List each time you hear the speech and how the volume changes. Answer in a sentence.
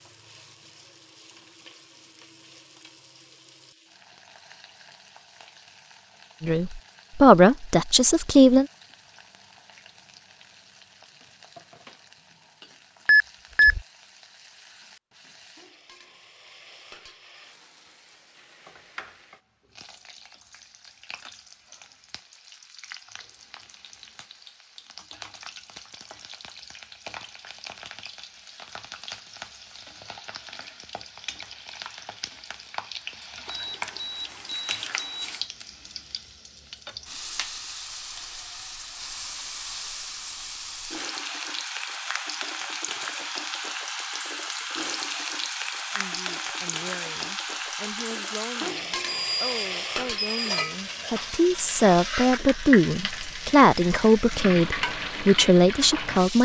You can hear the speech briefly from 6.4 to 8.7 s; and from 46.0 to 56.4 s, getting louder.